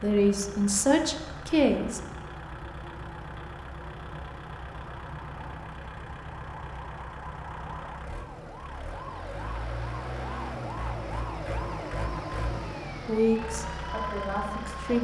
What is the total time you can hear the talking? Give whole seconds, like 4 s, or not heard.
4 s.